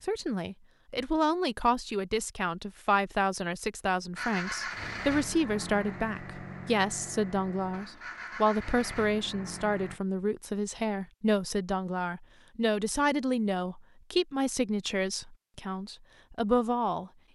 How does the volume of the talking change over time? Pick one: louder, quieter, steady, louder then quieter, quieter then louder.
steady.